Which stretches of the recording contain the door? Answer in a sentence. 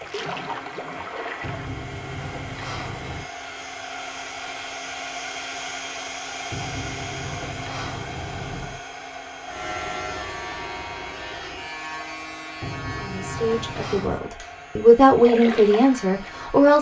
The door can be heard from 1.4 to 3.3 s, from 6.5 to 8.8 s and from 12.6 to 14.2 s.